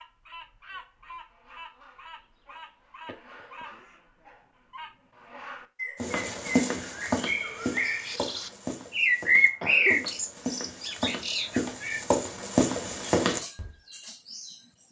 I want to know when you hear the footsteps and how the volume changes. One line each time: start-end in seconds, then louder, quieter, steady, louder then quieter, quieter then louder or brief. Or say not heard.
6.0-13.7 quieter then louder.